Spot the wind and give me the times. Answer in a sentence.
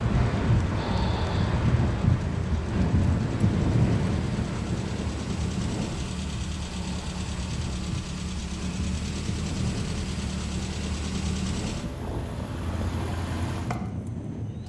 You can hear the wind from 0.0 to 14.6 s.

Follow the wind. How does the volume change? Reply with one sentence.
The loudness of the wind goes down.